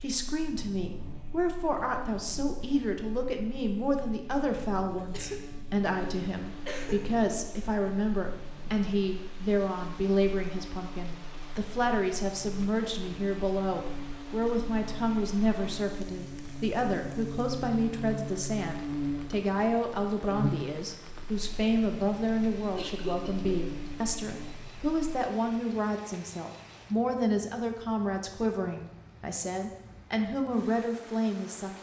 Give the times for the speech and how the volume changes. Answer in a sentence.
The speech can be heard from 0.0 to 31.7 s, at a steady volume.